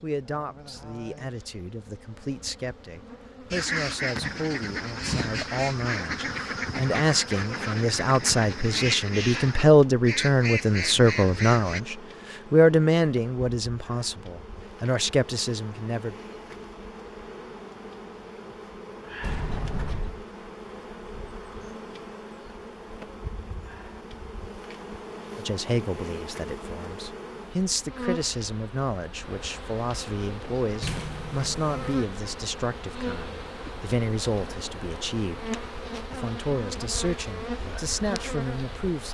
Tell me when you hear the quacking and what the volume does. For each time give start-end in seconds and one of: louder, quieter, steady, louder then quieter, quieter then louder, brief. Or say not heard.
3.5-11.8 steady.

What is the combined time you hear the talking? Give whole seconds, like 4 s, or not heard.
29 s.